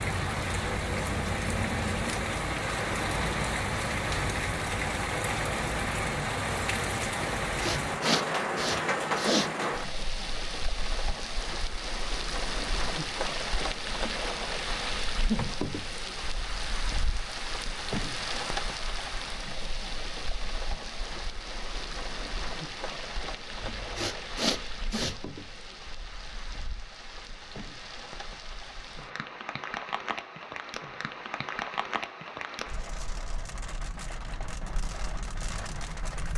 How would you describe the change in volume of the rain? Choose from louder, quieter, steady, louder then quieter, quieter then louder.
quieter.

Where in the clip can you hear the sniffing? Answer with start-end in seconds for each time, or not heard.
7.5-9.5, 23.6-25.1.